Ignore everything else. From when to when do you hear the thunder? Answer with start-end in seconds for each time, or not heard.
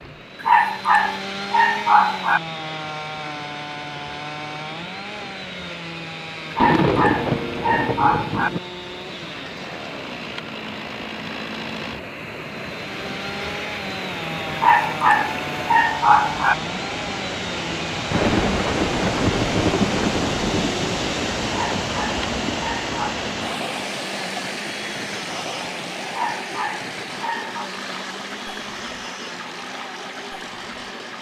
6.5-8.6, 18.1-22.7.